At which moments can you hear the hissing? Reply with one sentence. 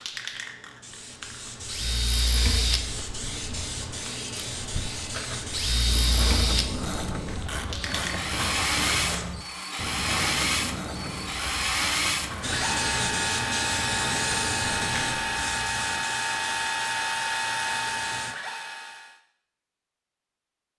You can hear the hissing from 0.0 to 9.3 s and from 12.4 to 18.4 s.